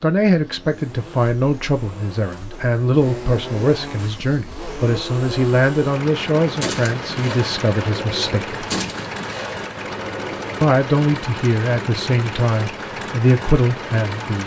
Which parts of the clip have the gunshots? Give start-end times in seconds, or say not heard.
6.5-10.6.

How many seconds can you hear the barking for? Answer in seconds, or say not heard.
not heard.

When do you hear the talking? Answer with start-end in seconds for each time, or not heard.
0.0-8.6, 10.6-14.4.